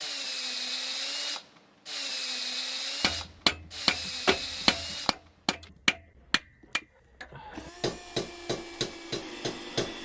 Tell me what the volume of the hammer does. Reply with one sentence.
The volume of the hammer goes down.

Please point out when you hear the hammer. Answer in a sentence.
The hammer can be heard from 3.0 to 10.0 s.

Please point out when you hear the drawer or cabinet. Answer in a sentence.
The drawer or cabinet can't be heard in this clip.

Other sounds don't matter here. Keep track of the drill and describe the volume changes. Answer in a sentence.
The loudness of the drill goes down, then up.